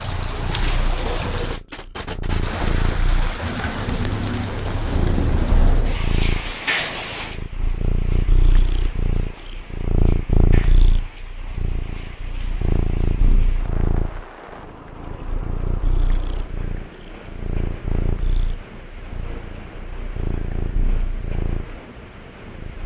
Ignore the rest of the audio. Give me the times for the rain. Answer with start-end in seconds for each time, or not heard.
0.0-22.8.